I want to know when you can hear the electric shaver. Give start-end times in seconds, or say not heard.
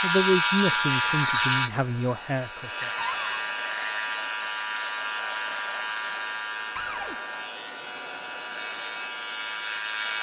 0.0-10.1.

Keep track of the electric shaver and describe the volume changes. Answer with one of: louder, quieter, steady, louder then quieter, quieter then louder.
quieter.